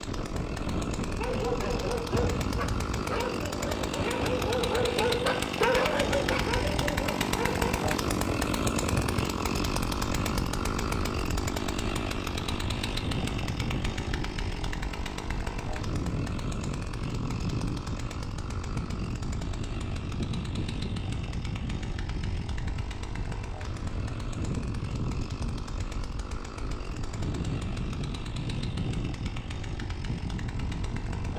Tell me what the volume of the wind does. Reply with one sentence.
The loudness of the wind stays about the same.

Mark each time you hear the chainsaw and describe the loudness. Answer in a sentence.
You can hear the chainsaw from 0.0 to 31.3 s, getting quieter.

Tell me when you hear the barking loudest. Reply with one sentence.
The volume of the barking peaks at 6 seconds.